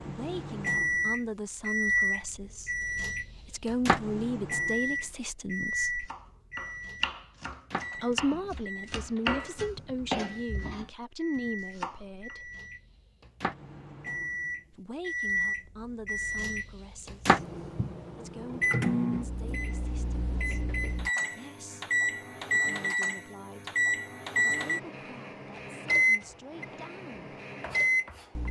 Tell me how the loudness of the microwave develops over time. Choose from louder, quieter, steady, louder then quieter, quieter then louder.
quieter then louder.